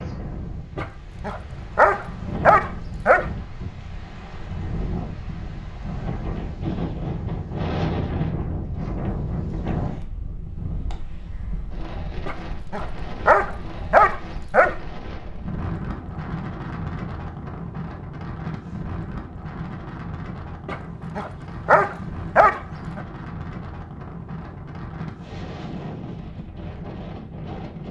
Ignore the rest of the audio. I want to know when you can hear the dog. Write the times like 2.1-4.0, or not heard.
0.8-3.2, 12.2-14.8, 20.6-23.0.